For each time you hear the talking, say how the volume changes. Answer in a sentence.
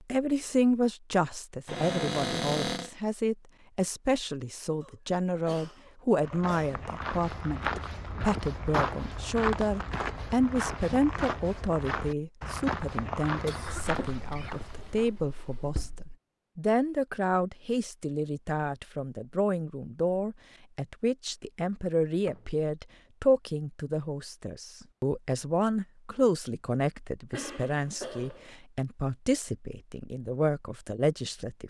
The talking can be heard from 0.1 to 31.6 s, at a steady volume.